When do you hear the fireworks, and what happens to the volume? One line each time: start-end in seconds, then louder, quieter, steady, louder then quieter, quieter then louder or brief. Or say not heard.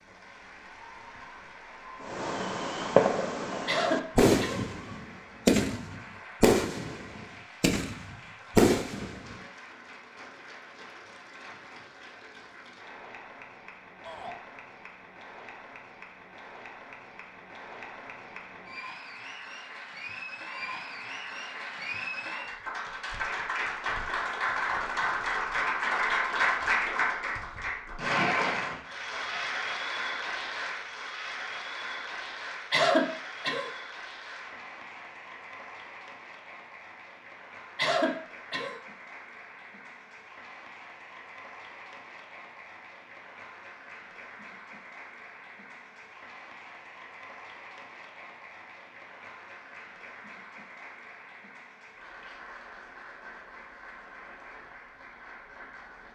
2.0-9.3 steady.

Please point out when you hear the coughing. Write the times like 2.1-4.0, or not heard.
3.6-4.7, 32.7-33.7, 37.8-38.8.